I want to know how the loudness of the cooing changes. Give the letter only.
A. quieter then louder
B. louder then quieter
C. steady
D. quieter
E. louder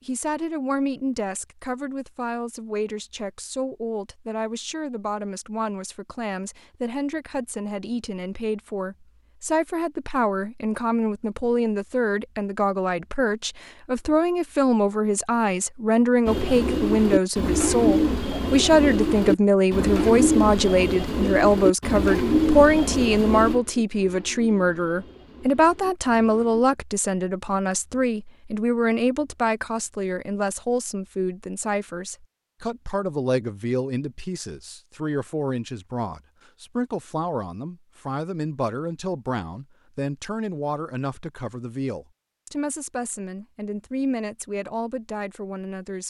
D.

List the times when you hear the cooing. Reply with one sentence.
The cooing can be heard from 16.2 to 26.6 s.